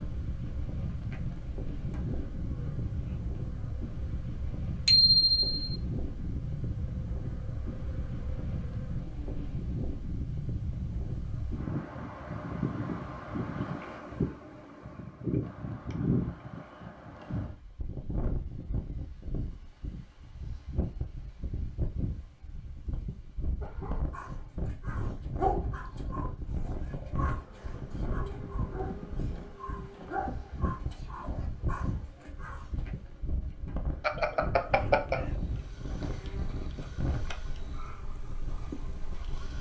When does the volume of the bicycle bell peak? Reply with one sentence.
The volume of the bicycle bell peaks at 5 seconds.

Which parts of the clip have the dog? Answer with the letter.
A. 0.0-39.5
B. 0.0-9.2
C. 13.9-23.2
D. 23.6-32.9
D.